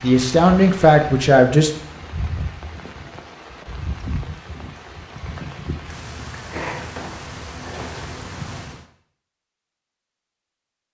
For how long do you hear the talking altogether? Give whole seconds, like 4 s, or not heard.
2 s.